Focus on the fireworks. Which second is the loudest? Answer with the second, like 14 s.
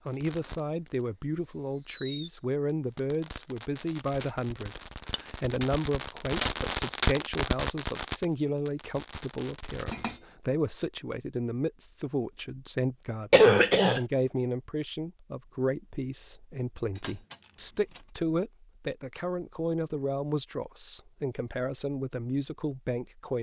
7 s.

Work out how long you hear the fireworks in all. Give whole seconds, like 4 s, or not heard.
10 s.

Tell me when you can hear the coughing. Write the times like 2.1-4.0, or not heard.
13.3-14.0.